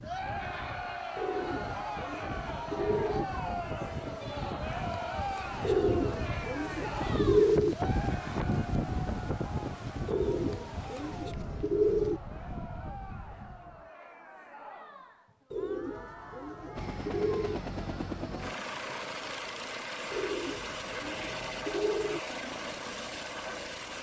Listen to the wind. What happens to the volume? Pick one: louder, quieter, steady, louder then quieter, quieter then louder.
louder then quieter.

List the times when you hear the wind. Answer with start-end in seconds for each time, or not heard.
0.0-13.9.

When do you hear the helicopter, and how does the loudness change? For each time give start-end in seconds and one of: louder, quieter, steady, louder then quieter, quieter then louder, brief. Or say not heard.
16.8-23.9 steady.